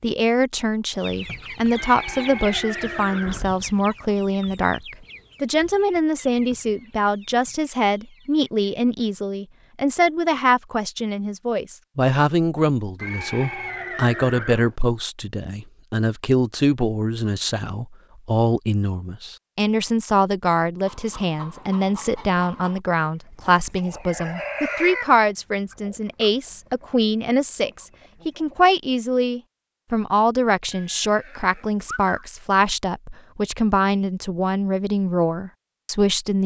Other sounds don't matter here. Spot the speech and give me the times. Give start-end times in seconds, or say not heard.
0.0-36.4.